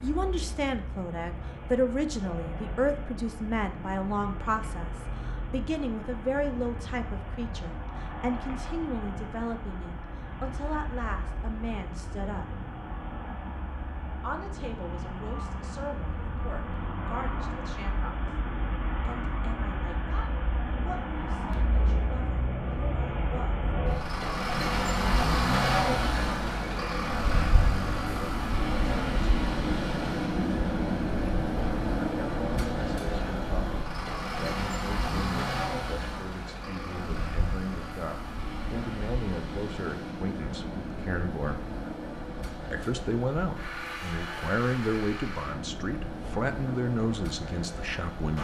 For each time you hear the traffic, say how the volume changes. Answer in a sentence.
You can hear the traffic from 0.0 to 48.4 s, getting louder then quieter.